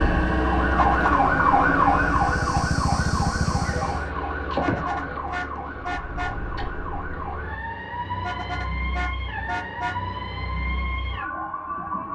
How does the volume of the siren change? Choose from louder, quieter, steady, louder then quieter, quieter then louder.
quieter.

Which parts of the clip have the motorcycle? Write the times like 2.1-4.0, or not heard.
0.0-4.1.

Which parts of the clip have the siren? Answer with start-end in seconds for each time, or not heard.
0.0-12.1.